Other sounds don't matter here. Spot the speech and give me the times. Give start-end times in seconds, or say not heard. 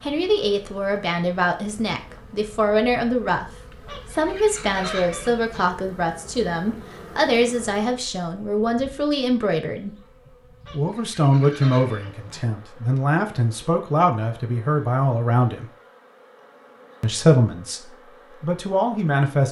0.0-3.5, 4.1-9.9, 10.7-15.7, 17.0-19.4.